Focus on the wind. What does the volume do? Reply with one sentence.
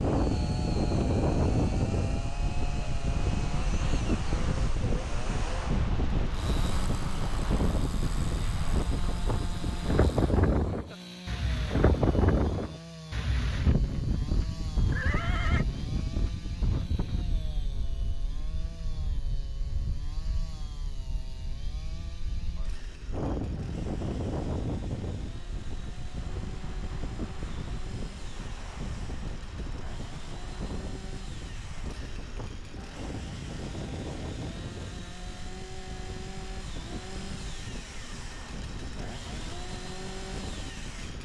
The volume of the wind goes down.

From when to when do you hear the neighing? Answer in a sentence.
You can hear the neighing from 14.9 to 15.7 s.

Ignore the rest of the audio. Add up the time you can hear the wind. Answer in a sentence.
You can hear the wind for 41 seconds altogether.